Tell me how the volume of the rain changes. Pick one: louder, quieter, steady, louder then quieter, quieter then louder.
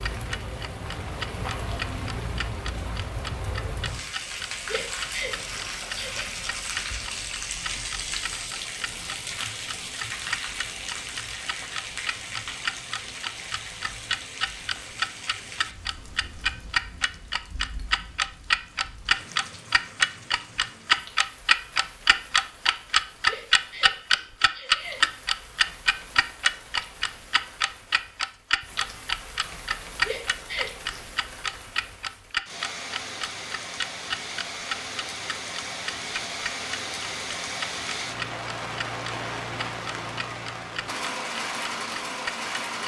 quieter then louder.